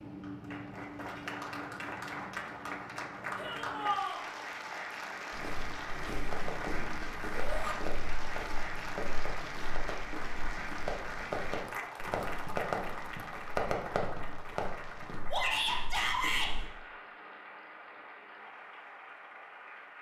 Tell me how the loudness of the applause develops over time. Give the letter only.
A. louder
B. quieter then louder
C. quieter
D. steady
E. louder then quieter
C.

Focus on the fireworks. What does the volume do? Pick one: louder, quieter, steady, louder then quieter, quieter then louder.
louder.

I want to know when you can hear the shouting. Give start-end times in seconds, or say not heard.
3.4-4.2, 7.3-7.8, 15.3-16.5.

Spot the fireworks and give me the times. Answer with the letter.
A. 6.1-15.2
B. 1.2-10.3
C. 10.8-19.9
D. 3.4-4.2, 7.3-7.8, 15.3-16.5
A.